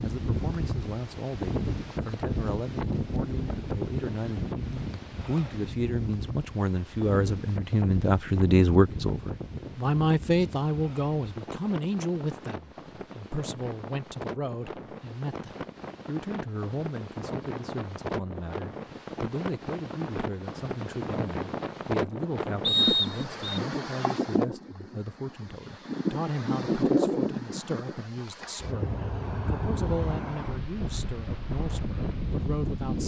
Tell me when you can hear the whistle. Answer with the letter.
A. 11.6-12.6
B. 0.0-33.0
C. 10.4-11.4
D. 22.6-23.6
D.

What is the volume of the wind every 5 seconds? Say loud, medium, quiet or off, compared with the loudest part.
loud, medium, medium, medium, loud, loud, loud.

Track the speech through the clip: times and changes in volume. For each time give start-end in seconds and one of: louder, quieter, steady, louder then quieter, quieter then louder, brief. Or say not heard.
0.0-33.0 louder then quieter.